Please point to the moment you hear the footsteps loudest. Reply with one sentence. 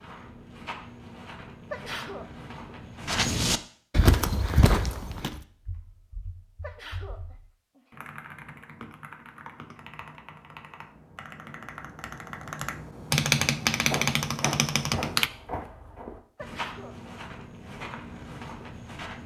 The loudest moment of the footsteps is at 4 seconds.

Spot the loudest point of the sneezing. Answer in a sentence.
The volume of the sneezing peaks at 2 seconds.